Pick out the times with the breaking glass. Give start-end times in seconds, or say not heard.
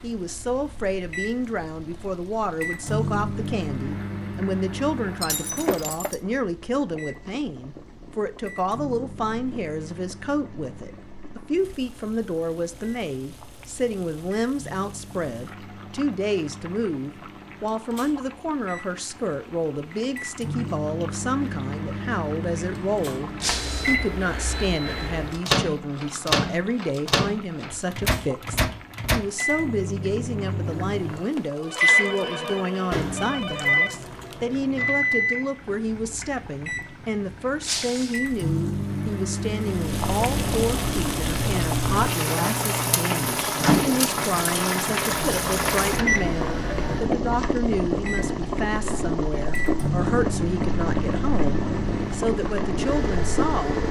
5.2-6.2, 23.4-23.9, 37.6-38.2.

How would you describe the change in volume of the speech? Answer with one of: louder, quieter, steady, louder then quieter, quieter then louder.
steady.